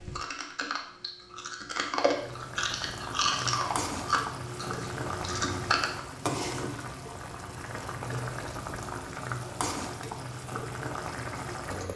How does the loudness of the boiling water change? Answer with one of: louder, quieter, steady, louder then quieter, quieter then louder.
steady.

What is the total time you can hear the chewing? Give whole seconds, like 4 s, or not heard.
6 s.